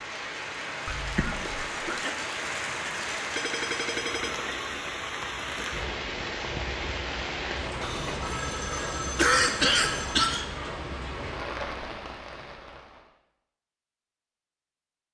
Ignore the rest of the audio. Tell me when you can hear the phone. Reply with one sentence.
The phone can be heard from 3.4 to 4.3 s and from 7.8 to 10.3 s.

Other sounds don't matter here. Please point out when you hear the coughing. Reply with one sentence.
The coughing can be heard from 0.8 to 2.1 s and from 9.2 to 10.4 s.